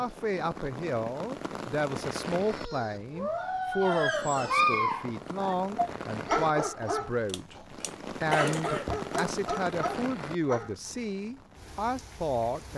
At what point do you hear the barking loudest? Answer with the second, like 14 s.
5 s.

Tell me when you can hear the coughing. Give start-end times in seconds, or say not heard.
7.2-9.3.